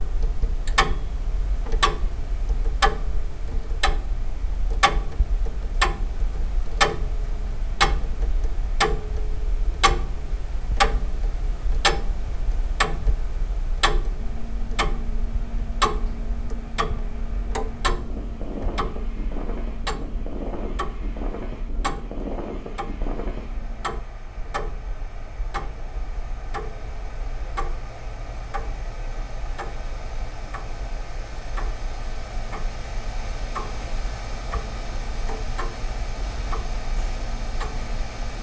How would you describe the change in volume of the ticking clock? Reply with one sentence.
The volume of the ticking clock goes down.